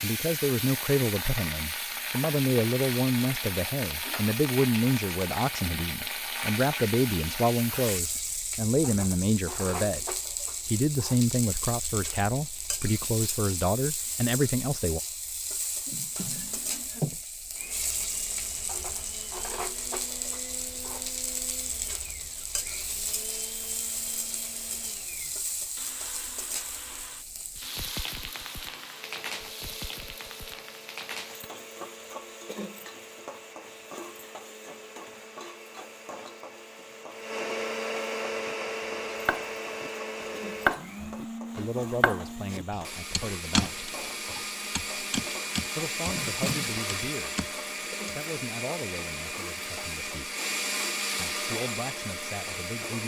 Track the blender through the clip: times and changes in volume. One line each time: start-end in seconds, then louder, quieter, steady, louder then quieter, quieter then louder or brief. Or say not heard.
17.6-53.0 louder.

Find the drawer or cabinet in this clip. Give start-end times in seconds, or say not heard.
15.8-17.1, 46.1-46.8.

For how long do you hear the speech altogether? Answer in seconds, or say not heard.
23 s.